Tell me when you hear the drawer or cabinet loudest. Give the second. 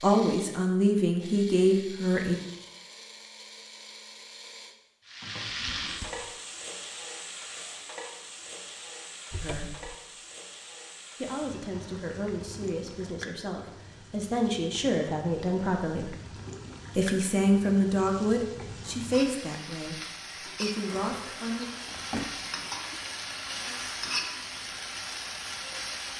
22 s.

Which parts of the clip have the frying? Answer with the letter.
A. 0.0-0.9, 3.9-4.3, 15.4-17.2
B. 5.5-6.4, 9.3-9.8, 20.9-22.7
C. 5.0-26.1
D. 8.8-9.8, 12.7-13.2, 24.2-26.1
C.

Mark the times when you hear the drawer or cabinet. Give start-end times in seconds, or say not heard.
5.5-6.4, 9.3-9.8, 20.9-22.7.